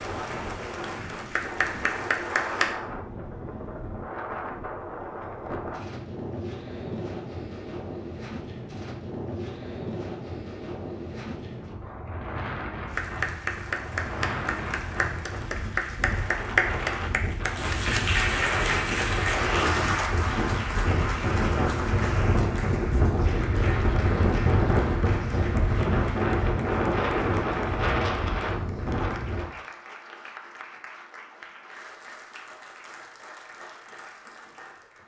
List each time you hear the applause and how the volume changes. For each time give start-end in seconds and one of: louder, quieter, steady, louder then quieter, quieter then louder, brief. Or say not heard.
0.0-2.8 brief
12.9-35.0 quieter.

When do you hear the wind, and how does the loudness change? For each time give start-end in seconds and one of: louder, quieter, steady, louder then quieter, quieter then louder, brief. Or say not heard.
0.0-29.5 louder.